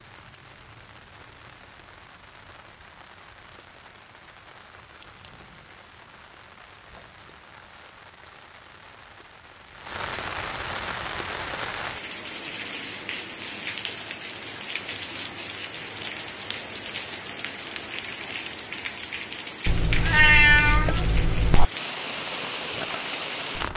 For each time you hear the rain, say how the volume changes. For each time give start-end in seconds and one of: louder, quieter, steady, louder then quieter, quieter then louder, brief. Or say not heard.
0.0-23.7 louder.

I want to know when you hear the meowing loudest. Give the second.
20 s.